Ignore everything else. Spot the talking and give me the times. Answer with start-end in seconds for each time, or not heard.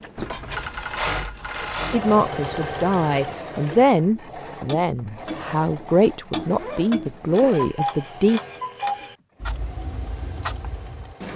1.9-8.4.